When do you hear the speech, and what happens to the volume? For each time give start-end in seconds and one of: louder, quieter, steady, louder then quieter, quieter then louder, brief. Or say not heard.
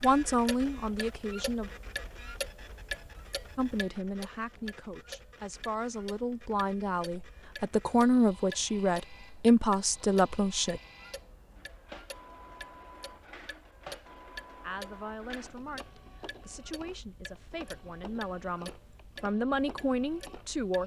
0.0-1.7 brief
3.5-10.8 louder
14.6-20.8 louder.